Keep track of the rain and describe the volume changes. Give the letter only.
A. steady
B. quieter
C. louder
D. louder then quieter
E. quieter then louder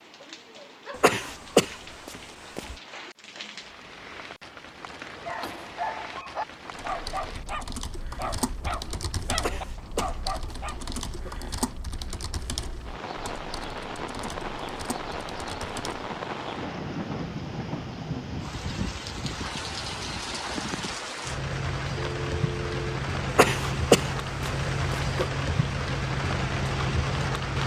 C.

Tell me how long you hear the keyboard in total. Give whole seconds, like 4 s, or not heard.
9 s.